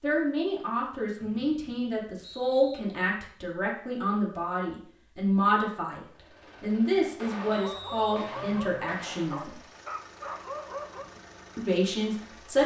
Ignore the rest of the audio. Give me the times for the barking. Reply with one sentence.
The barking can be heard from 7.5 to 11.1 s.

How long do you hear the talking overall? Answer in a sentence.
The talking can be heard for 11 seconds in total.